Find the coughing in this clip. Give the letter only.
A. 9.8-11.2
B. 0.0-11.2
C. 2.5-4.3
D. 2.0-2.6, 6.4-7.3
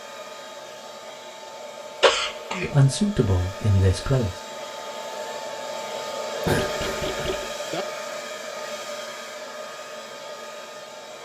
D.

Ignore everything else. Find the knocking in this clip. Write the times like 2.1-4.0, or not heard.
6.5-7.8.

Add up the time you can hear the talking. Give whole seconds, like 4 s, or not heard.
2 s.